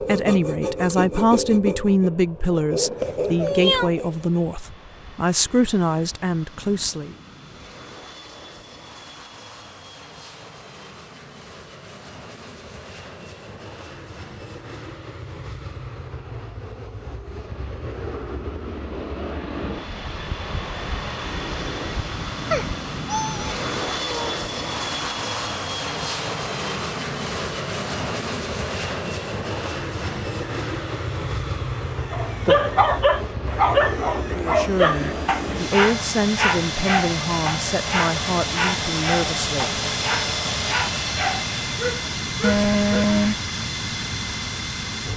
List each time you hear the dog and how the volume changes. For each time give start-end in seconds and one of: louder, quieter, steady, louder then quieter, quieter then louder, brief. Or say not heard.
32.1-43.1 quieter.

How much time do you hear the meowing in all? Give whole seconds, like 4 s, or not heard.
4 s.